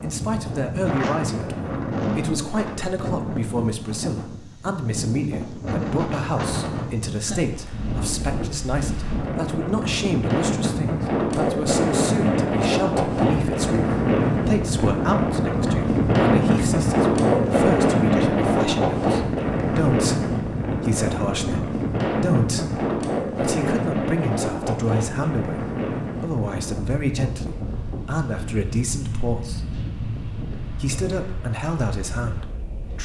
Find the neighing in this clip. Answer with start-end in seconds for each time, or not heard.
not heard.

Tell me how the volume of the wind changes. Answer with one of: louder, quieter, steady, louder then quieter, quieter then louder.
louder then quieter.